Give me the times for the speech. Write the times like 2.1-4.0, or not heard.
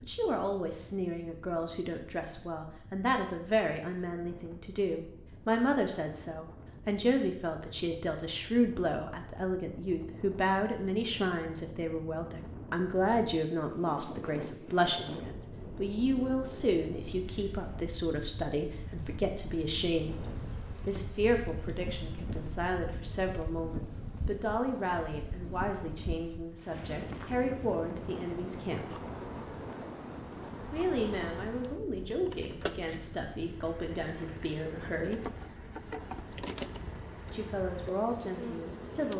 0.0-20.1, 20.9-28.9, 30.7-35.2, 37.2-39.1.